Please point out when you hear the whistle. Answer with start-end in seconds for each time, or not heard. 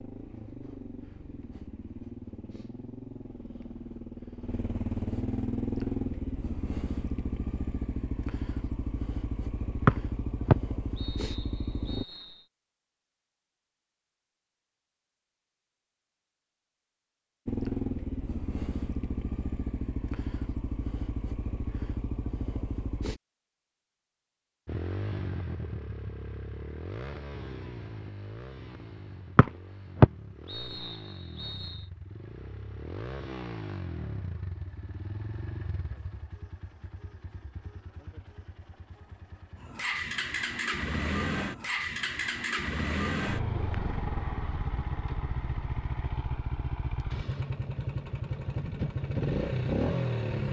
9.8-12.4, 29.4-31.9.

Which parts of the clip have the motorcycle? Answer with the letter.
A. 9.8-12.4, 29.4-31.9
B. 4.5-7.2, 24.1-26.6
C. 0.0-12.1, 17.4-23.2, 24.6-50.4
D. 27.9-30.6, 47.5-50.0
C.